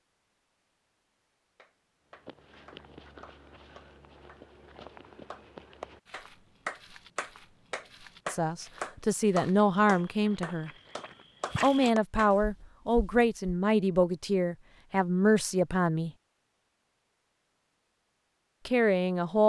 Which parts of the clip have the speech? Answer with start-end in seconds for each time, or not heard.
8.2-10.7, 11.6-16.1, 18.6-19.4.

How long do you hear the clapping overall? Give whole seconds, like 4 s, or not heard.
11 s.